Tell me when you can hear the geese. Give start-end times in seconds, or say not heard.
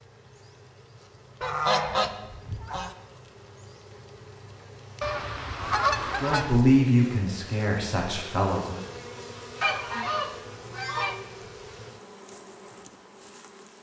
1.4-3.0, 5.0-6.5, 9.6-11.2.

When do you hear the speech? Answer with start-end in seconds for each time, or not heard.
6.2-8.8.